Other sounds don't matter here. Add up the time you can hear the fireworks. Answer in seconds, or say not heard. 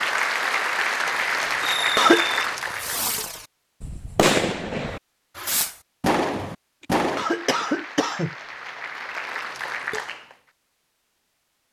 6 s.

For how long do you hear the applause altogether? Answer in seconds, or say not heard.
6 s.